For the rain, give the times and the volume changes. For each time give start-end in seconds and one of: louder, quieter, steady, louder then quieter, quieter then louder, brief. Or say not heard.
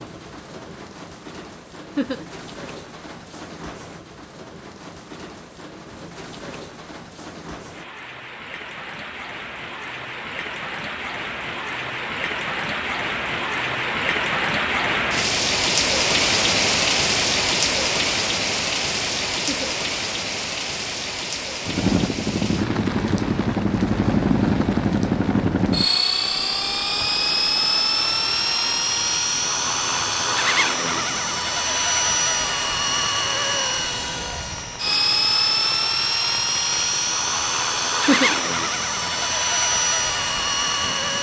0.0-41.1 louder then quieter.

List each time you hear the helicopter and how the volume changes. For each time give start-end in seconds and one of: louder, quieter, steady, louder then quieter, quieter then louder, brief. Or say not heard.
21.6-41.1 steady.